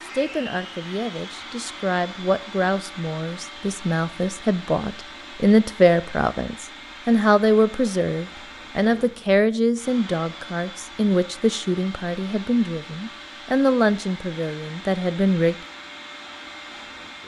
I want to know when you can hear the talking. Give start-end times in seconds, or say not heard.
0.1-15.6.